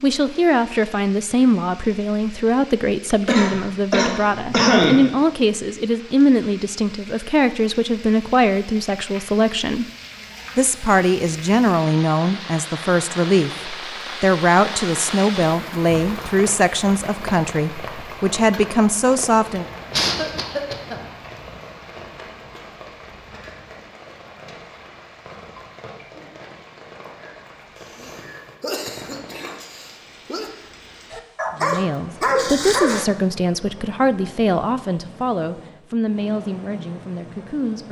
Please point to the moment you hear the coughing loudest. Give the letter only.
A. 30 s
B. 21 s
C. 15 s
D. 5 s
D.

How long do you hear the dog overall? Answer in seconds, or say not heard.
2 s.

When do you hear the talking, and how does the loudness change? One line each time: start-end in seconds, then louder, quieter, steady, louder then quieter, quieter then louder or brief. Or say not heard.
0.0-9.8 steady
10.6-19.6 steady
31.6-37.8 quieter.